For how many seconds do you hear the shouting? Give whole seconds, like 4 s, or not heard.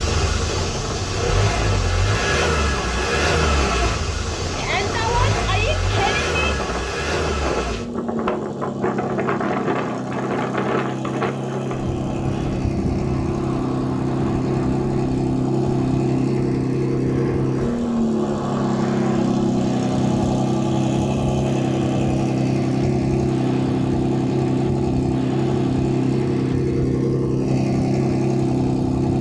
2 s.